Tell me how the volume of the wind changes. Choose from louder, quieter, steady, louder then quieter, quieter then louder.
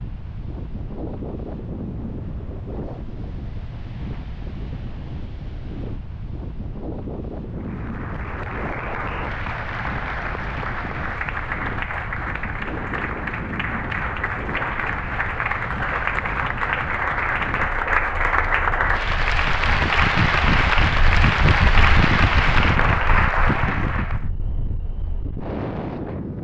louder.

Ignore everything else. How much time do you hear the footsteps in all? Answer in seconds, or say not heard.
not heard.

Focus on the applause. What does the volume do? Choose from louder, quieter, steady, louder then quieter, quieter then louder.
louder.